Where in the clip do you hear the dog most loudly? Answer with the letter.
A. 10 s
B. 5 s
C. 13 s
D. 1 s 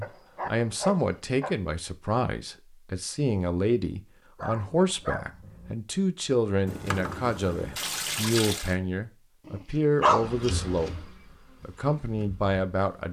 A.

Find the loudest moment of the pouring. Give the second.
8 s.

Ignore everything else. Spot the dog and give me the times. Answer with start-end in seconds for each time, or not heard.
0.0-1.6, 4.3-5.8, 9.4-10.9.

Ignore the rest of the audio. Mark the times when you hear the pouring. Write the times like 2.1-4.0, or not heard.
6.7-8.8.